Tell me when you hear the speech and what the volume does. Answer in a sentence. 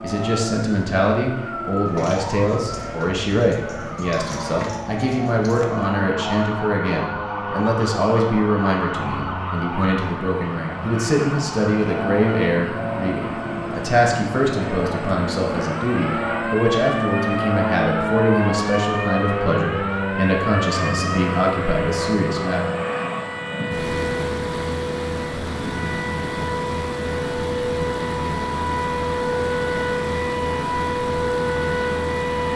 The speech can be heard from 0.0 to 22.7 s, at a steady volume.